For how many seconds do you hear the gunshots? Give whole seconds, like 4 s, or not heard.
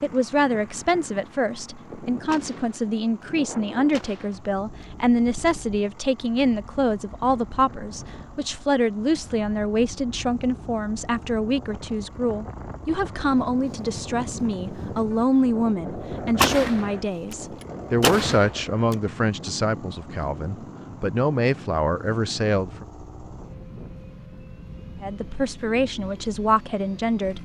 4 s.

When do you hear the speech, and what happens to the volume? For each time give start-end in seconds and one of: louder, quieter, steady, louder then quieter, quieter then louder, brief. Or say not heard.
0.0-22.9 steady
25.0-27.4 brief.